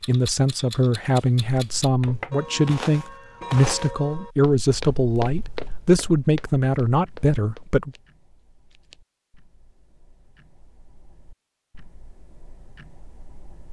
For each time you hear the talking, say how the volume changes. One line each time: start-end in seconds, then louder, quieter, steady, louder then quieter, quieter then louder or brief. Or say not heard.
0.1-7.9 steady.